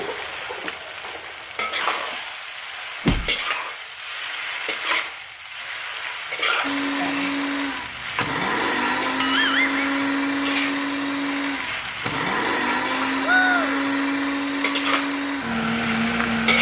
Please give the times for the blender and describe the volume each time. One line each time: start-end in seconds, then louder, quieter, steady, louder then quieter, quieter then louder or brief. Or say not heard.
6.6-16.5 steady.